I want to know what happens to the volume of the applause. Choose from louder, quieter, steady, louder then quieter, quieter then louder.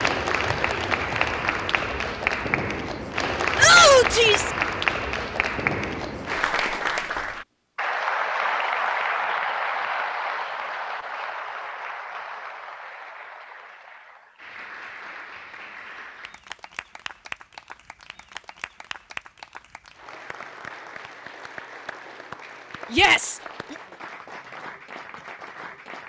quieter.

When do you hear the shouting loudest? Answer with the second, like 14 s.
4 s.